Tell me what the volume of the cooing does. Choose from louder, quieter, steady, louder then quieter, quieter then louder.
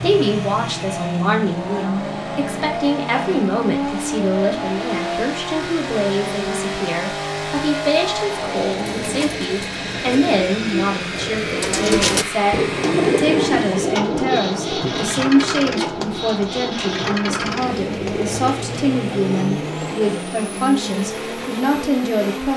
louder then quieter.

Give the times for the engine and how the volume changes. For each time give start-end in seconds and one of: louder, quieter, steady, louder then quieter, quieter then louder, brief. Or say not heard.
0.0-22.5 steady.